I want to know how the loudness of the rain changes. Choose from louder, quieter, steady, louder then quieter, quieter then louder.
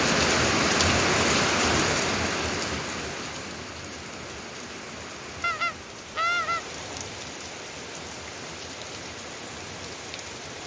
quieter.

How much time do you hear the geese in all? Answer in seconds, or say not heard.
2 s.